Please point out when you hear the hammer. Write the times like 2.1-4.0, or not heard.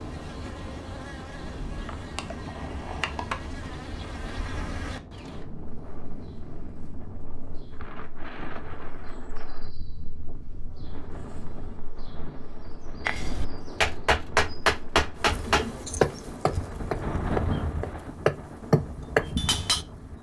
13.1-19.9.